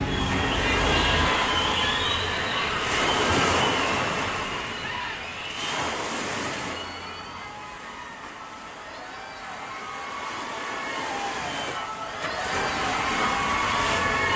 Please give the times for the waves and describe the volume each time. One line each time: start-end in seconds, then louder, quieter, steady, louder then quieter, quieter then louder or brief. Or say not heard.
0.0-14.3 quieter then louder.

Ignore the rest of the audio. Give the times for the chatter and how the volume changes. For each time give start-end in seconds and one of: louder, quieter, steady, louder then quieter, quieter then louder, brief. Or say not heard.
0.0-14.3 quieter then louder.